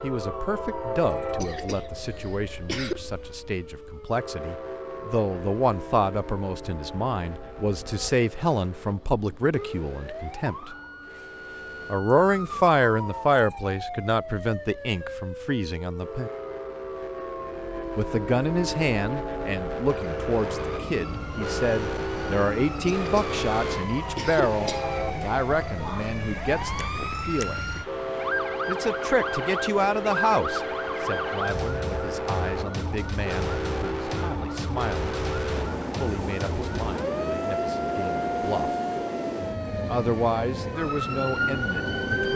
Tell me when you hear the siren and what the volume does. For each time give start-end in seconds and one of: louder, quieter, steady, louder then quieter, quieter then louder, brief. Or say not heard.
0.0-42.3 louder.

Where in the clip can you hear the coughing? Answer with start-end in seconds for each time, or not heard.
1.4-3.0, 22.9-23.3, 24.1-24.9.